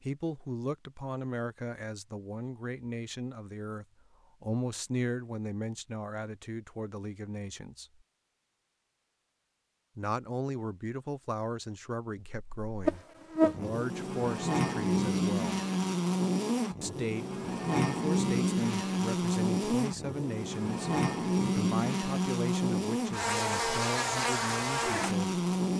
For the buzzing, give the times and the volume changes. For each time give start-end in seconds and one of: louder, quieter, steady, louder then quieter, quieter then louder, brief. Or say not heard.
12.2-25.7 steady.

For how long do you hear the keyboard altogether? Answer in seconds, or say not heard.
not heard.